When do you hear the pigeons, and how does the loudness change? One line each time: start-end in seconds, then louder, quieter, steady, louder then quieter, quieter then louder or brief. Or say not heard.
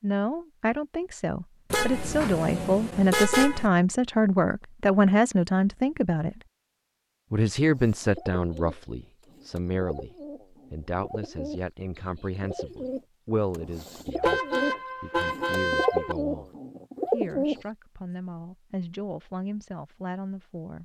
7.5-17.6 louder.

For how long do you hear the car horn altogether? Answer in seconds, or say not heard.
4 s.